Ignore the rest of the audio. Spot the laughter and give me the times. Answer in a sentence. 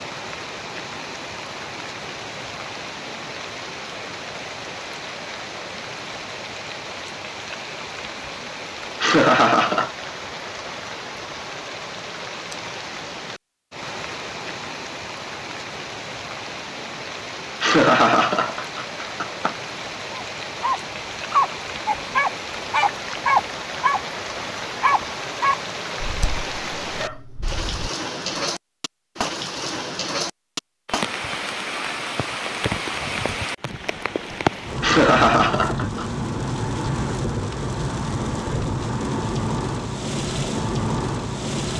You can hear the laughter from 9.0 to 9.9 s, from 17.6 to 19.6 s and from 34.8 to 36.0 s.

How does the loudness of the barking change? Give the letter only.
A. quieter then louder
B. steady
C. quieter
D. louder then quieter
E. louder
C.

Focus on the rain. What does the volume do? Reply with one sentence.
The loudness of the rain goes up.